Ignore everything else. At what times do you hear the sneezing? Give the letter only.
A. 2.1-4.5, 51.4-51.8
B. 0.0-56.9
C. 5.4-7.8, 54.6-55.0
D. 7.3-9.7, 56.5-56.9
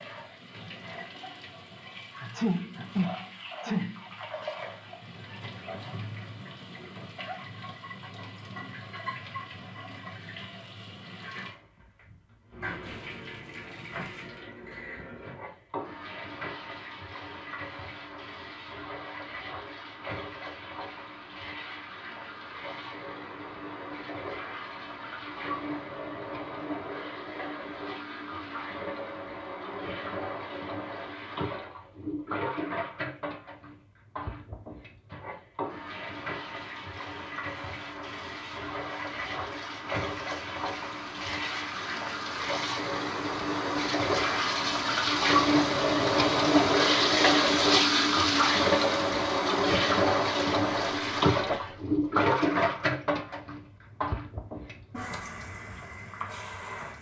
A.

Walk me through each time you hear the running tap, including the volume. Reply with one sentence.
The running tap can be heard from 0.0 to 56.9 s, getting louder.